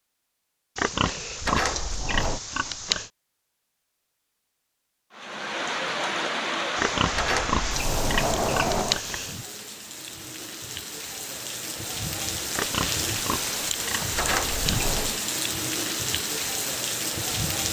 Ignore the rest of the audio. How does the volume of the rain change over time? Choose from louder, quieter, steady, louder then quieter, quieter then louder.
quieter then louder.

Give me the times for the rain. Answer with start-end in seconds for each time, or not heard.
5.1-17.6.